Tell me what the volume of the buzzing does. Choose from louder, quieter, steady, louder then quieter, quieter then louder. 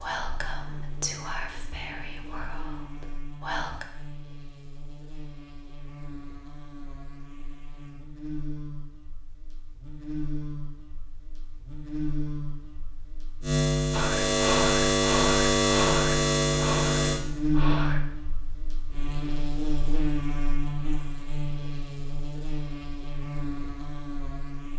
louder then quieter.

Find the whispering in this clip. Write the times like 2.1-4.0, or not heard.
0.0-3.9, 13.9-18.0.